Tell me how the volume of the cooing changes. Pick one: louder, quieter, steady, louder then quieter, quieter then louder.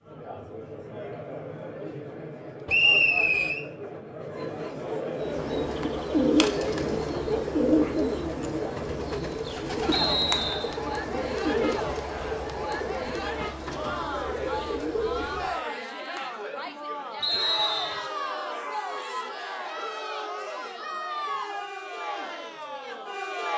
quieter.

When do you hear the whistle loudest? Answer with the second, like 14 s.
3 s.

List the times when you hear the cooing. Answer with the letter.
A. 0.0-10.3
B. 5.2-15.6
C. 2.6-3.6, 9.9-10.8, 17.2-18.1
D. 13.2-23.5
B.